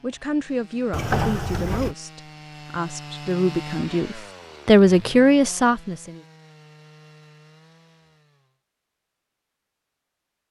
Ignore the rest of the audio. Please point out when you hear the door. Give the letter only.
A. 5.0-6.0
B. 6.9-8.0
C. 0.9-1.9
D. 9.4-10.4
C.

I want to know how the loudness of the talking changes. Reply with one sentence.
The loudness of the talking goes up.